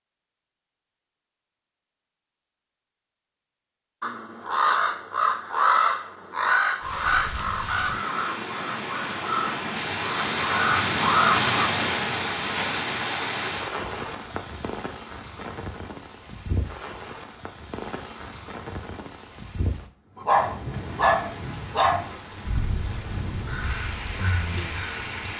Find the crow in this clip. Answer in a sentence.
You can hear the crow from 4.0 to 11.6 s and from 22.4 to 25.3 s.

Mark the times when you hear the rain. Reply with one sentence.
You can hear the rain from 6.8 to 25.3 s.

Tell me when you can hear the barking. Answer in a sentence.
The barking can be heard from 20.1 to 22.1 s.